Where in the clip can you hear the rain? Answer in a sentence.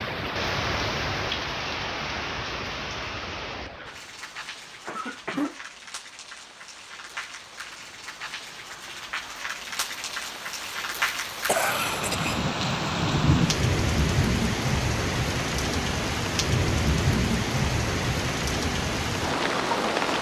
You can hear the rain from 0.0 to 20.1 s.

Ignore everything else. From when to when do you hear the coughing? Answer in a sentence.
The coughing can be heard from 4.8 to 5.5 s and from 11.4 to 12.4 s.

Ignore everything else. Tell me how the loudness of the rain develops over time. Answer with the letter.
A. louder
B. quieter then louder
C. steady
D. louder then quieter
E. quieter
B.